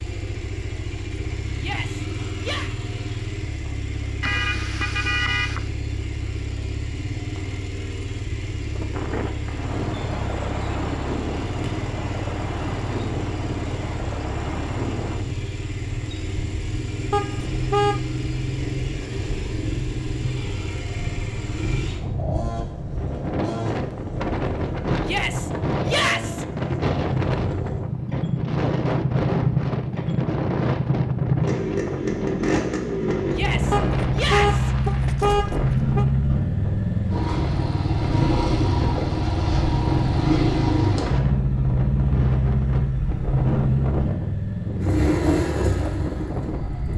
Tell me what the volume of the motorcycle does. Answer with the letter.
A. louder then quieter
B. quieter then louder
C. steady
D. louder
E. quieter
D.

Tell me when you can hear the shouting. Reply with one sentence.
The shouting can be heard from 1.6 to 2.7 s, from 25.0 to 26.4 s and from 33.3 to 34.7 s.